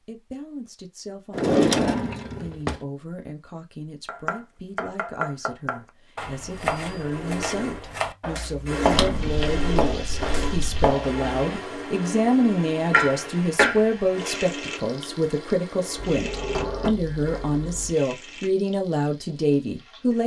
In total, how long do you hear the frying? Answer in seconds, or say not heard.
11 s.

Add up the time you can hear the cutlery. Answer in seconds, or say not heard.
not heard.